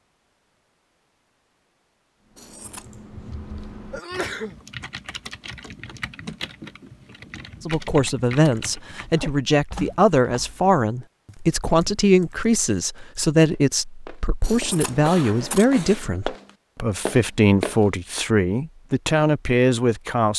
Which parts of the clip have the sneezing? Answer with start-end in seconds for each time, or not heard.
3.9-4.5.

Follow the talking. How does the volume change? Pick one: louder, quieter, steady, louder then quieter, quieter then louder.
steady.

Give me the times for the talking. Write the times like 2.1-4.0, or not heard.
7.7-20.3.